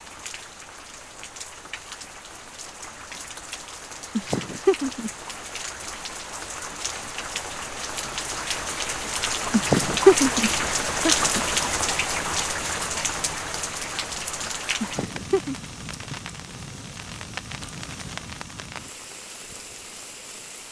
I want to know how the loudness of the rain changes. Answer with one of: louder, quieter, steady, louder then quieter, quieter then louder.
louder then quieter.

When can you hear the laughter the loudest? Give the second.
10 s.